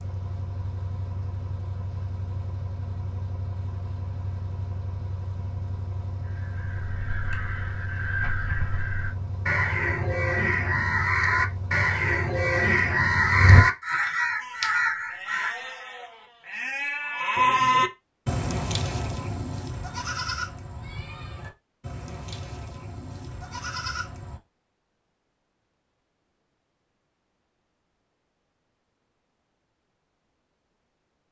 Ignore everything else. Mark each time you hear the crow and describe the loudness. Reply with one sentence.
The crow can be heard from 6.2 to 15.6 s, getting louder.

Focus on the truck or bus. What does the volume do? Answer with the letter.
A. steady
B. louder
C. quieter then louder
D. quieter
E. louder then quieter
A.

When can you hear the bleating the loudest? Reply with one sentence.
The loudest moment of the bleating is at 18 seconds.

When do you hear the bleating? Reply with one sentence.
You can hear the bleating from 14.4 to 24.4 s.